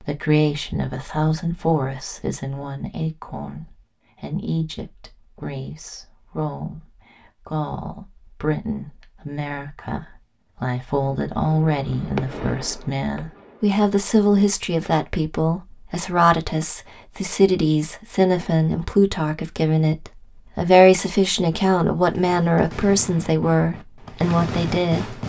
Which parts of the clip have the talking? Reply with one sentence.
The talking can be heard from 0.0 to 25.2 s.